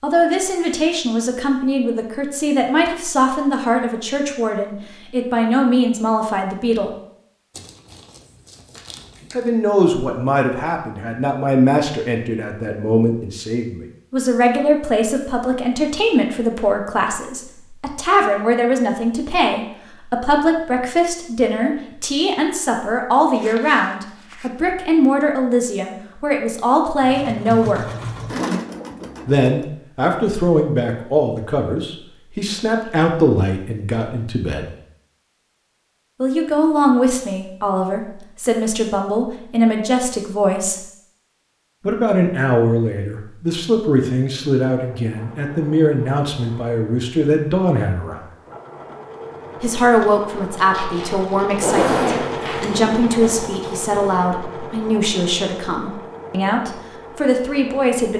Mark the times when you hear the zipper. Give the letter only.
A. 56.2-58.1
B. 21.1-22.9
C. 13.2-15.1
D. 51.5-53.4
D.